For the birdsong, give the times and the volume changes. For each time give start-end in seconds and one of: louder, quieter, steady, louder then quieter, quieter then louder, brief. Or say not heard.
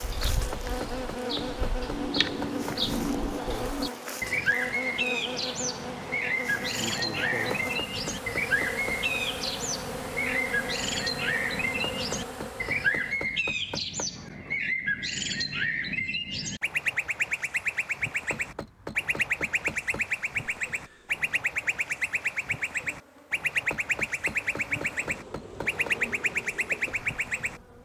0.0-27.6 steady.